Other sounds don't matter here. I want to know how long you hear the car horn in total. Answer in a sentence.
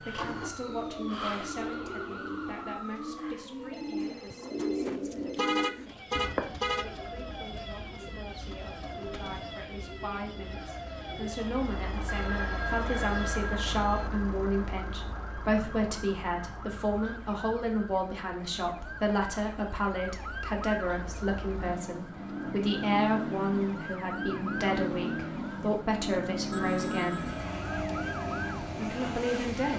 You can hear the car horn for 2 seconds altogether.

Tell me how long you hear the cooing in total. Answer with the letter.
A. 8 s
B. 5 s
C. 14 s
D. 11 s
D.